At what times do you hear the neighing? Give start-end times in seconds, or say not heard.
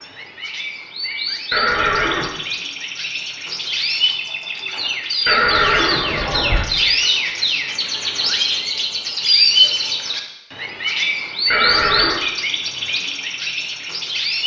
1.5-2.3, 5.2-6.7, 11.5-12.2.